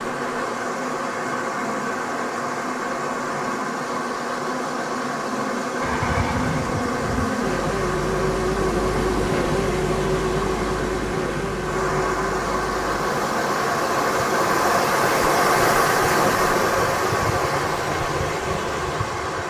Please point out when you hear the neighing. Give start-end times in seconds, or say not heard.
5.8-7.3.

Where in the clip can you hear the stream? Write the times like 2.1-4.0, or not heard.
0.0-19.4.